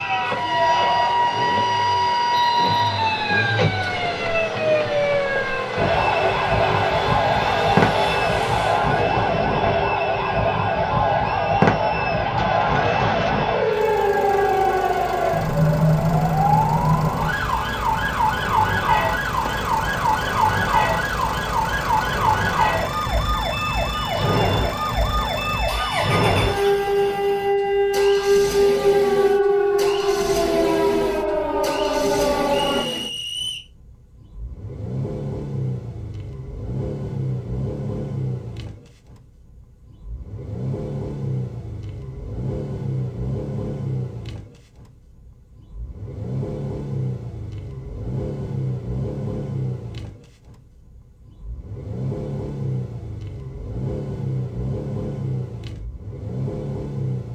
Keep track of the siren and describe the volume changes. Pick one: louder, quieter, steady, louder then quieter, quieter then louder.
steady.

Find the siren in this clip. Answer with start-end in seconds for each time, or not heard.
0.0-32.9.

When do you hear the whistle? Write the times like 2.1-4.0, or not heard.
2.3-4.3, 32.5-33.6.